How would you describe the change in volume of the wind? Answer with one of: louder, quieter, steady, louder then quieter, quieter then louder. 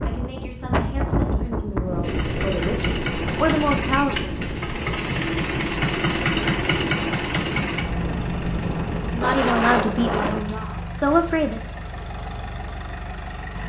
quieter then louder.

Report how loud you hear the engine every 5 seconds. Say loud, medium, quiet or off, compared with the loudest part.
loud, loud, medium.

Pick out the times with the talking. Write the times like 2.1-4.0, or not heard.
0.1-4.3, 9.2-11.6.